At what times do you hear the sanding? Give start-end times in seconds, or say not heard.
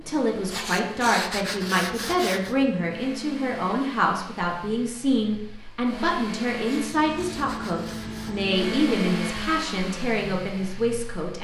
0.5-2.5, 6.7-8.4.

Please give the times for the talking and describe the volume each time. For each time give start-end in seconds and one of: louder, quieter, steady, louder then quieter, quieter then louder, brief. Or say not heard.
0.0-11.3 steady.